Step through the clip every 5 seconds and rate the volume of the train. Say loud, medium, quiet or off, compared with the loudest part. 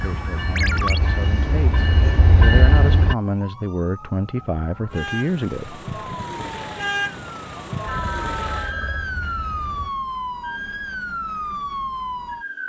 loud, quiet, off.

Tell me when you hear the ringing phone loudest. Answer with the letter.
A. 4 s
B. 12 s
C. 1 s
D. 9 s
C.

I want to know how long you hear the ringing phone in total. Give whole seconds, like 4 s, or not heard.
2 s.